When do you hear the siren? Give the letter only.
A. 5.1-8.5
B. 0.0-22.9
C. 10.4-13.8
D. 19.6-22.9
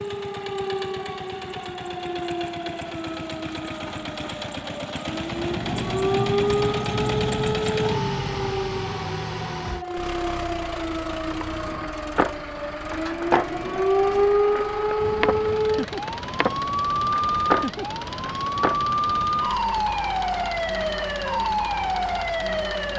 B.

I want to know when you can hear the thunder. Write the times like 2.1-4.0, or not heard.
5.1-8.5.